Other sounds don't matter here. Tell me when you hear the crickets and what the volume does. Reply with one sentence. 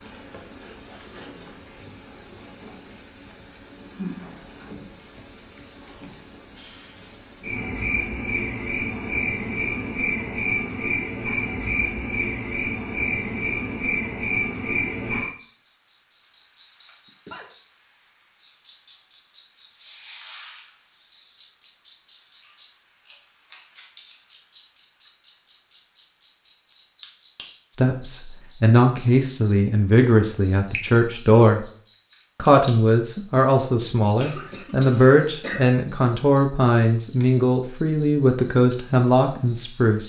You can hear the crickets from 0.0 to 40.0 s, at a steady volume.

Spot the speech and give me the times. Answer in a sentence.
You can hear the speech from 27.8 to 31.6 s and from 32.4 to 40.0 s.